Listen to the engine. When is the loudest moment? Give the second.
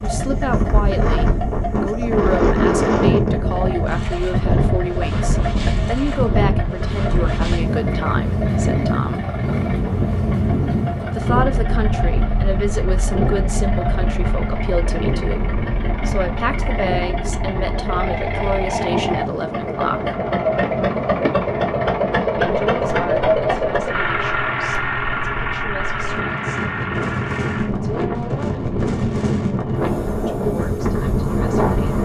23 s.